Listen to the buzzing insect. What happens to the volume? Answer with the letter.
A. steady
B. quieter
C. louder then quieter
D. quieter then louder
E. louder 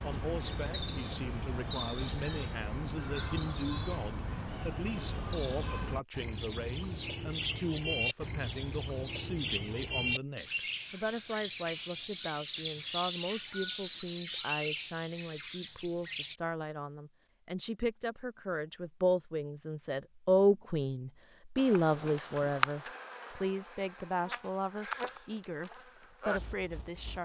D.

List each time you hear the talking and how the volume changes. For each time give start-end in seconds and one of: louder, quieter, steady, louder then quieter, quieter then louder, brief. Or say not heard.
0.0-27.1 louder.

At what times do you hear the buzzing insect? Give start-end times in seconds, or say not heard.
21.6-27.1.